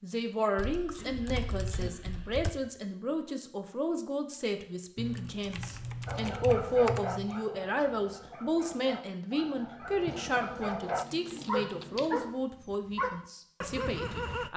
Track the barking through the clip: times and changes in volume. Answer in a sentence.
You can hear the barking from 6.0 to 14.5 s, getting quieter then louder.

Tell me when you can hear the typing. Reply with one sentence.
The typing can be heard from 0.6 to 2.5 s, from 5.0 to 7.4 s and from 10.1 to 12.1 s.